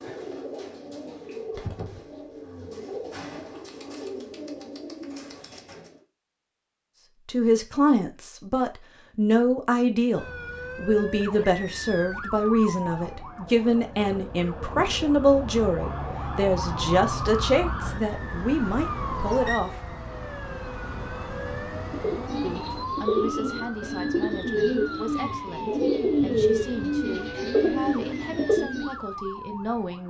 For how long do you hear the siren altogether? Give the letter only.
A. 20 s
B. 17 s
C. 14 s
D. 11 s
A.